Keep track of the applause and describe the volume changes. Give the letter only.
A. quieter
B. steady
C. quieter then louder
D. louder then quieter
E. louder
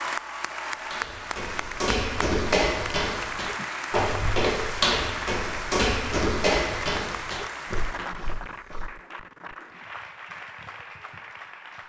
A.